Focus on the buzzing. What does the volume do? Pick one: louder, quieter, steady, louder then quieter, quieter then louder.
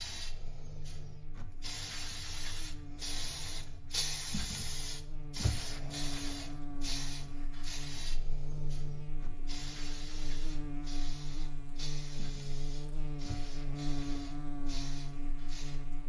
louder.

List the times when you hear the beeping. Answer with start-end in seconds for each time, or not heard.
not heard.